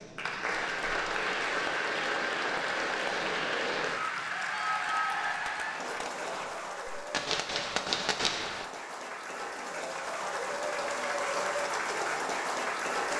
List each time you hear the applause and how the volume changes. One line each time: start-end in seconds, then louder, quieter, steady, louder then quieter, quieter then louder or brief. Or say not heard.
0.0-13.1 quieter then louder.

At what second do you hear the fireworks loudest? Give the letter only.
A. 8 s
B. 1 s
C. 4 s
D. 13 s
A.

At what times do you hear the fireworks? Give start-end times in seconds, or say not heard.
4.8-8.7.